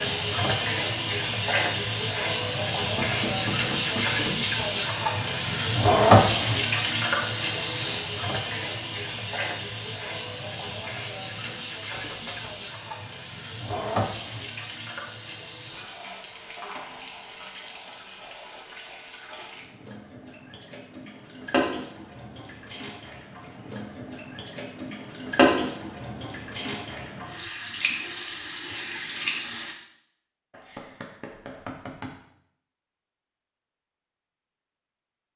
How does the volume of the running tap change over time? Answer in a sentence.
The loudness of the running tap goes down, then up.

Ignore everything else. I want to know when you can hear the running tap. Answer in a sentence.
You can hear the running tap from 0.0 to 29.8 s.